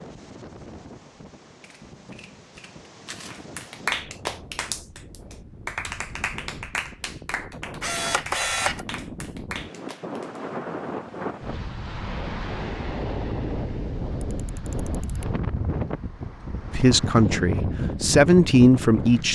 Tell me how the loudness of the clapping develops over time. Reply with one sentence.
The volume of the clapping goes down.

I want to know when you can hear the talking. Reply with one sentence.
The talking can be heard from 16.7 to 19.3 s.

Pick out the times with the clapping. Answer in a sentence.
The clapping can be heard from 3.2 to 10.4 s.